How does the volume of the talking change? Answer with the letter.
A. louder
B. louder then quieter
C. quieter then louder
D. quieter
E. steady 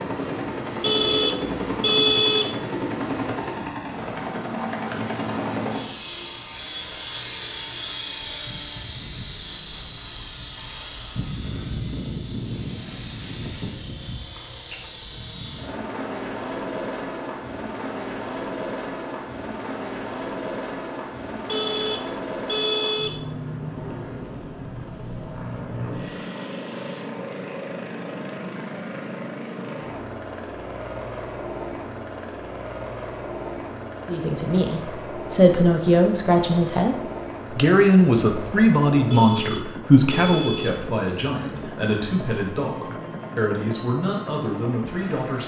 D.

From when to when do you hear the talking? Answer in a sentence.
The talking can be heard from 34.0 to 45.4 s.